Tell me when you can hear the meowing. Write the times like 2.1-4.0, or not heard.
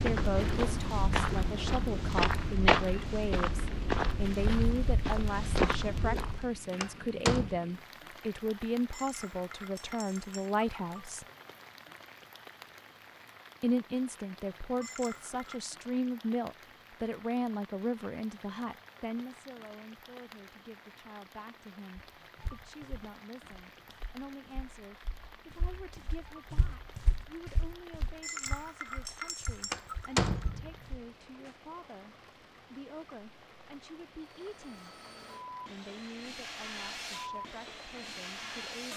not heard.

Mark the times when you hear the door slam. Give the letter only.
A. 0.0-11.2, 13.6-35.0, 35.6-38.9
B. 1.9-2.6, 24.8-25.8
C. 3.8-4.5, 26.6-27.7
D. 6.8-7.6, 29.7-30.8
D.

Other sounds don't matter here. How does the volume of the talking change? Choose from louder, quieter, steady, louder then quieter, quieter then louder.
quieter.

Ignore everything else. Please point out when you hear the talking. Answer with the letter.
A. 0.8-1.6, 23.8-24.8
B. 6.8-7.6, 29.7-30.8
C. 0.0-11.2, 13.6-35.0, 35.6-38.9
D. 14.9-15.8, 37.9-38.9
C.